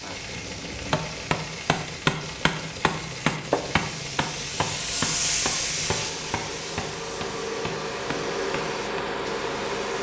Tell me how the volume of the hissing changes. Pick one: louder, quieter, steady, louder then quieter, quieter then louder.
louder then quieter.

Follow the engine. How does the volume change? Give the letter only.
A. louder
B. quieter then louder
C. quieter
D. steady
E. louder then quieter
A.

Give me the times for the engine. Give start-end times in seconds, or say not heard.
0.0-9.9.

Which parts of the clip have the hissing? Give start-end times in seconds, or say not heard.
0.0-9.9.